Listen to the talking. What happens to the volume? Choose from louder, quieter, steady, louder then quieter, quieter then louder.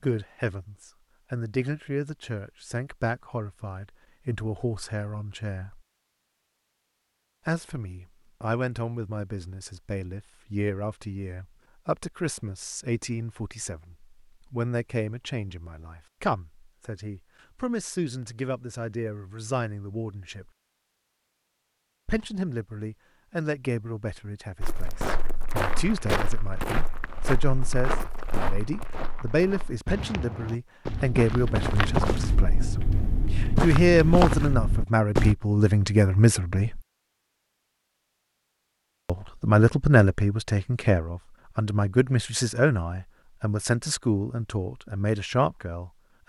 louder.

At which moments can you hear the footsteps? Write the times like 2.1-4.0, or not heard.
24.6-35.4.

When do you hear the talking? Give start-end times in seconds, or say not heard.
0.0-5.8, 7.5-20.5, 22.1-36.8, 39.0-46.2.